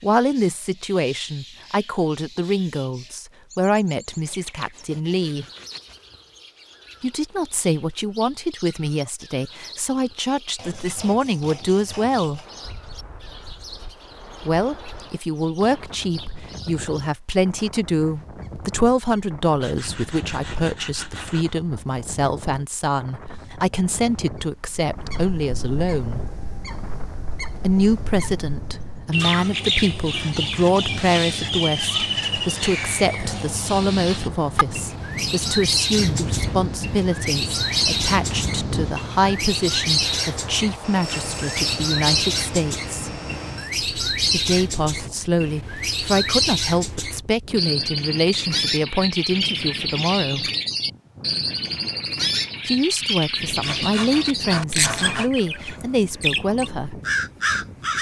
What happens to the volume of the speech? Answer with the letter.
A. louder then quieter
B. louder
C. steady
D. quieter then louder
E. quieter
C.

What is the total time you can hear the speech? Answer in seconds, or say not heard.
49 s.